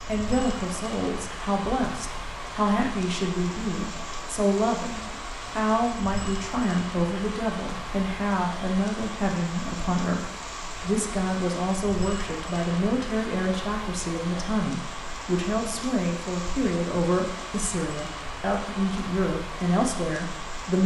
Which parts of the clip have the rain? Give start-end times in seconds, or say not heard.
0.0-20.8.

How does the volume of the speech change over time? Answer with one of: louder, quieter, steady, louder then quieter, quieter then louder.
steady.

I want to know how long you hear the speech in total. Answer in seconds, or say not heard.
21 s.